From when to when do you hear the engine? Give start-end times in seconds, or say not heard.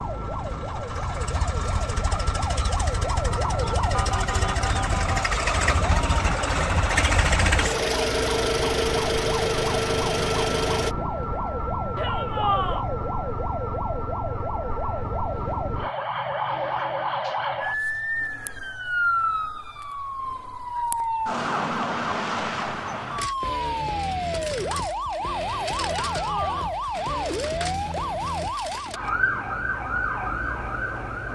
0.0-10.9.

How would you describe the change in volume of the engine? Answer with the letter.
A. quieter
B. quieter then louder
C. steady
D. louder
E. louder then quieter
D.